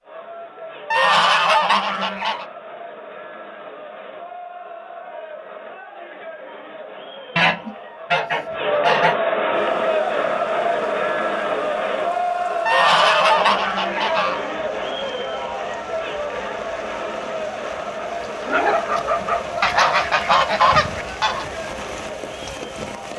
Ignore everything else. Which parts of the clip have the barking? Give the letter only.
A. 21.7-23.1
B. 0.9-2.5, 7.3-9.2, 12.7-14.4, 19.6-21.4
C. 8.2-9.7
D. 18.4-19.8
D.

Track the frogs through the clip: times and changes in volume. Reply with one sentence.
You can't hear the frogs here.